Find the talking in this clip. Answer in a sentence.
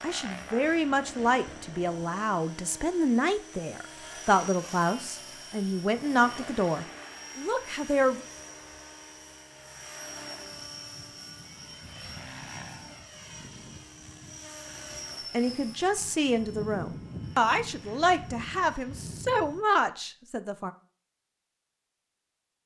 The talking can be heard from 0.0 to 8.2 s and from 15.3 to 20.7 s.